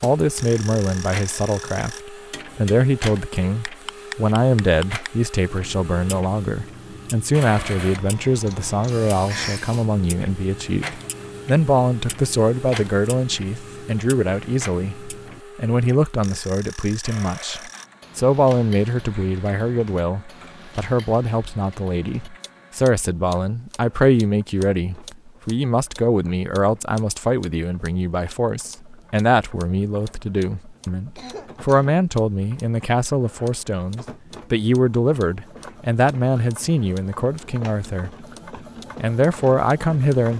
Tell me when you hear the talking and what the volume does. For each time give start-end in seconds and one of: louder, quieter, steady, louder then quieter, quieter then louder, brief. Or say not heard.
0.0-38.2 steady
39.0-40.3 brief.